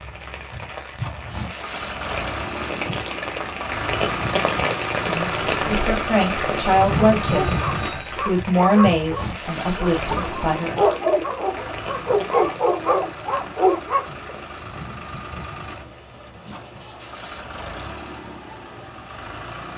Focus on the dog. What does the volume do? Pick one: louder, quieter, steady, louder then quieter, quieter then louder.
quieter then louder.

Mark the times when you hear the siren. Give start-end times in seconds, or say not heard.
not heard.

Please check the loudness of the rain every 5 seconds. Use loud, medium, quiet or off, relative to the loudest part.
loud, loud, medium, quiet.